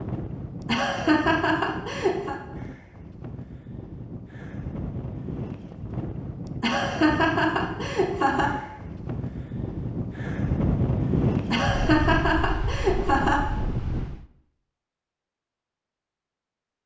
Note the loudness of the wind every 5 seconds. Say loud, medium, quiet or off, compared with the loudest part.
medium, medium, loud, off.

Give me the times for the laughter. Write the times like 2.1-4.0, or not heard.
0.7-2.4, 6.6-8.5, 11.5-13.4.